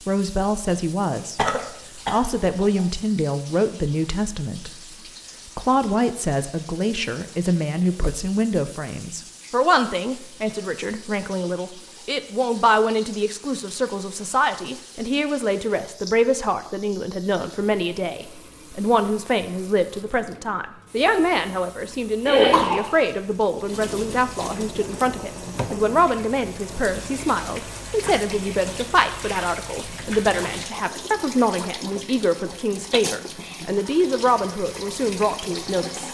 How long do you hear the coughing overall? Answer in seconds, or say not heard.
2 s.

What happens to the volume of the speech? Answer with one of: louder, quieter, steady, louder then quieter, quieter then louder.
steady.